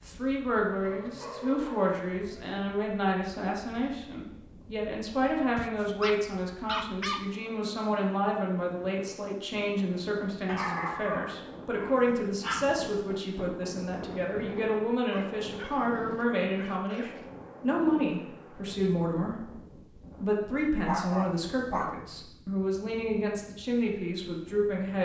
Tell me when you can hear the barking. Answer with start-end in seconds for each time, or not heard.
0.8-2.5, 5.5-7.2, 10.4-12.7, 15.1-17.2, 20.9-22.0.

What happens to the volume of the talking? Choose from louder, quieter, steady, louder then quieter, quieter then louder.
steady.